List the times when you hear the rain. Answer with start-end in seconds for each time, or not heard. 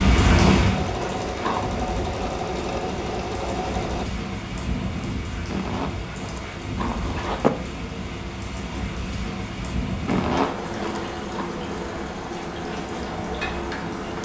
0.0-14.1.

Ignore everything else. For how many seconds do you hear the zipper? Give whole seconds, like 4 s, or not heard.
5 s.